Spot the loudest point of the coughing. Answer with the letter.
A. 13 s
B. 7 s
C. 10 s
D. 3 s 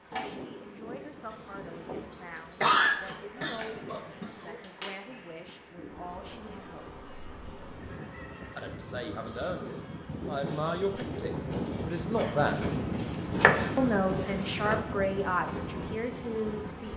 D.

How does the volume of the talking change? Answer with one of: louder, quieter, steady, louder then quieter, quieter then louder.
louder.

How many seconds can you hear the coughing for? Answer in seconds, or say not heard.
3 s.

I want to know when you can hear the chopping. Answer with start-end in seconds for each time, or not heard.
13.3-14.8.